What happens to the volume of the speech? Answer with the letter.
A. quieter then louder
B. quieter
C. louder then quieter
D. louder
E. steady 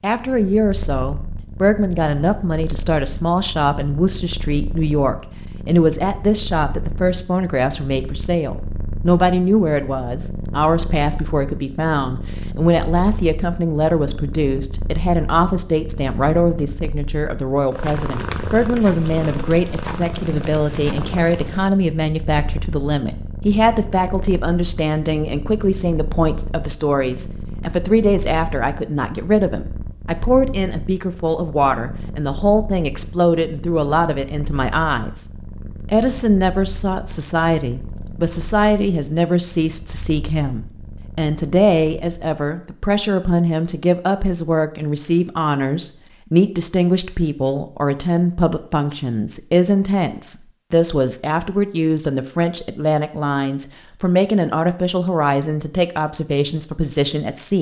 E.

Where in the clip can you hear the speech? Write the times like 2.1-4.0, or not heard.
0.0-57.5.